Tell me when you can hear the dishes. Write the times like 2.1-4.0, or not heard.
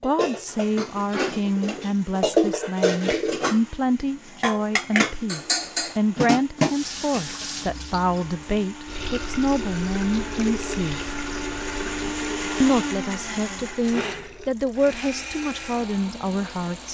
0.0-7.5.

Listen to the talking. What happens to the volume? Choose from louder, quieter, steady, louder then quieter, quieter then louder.
steady.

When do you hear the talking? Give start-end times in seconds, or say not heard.
0.0-11.2, 12.6-16.9.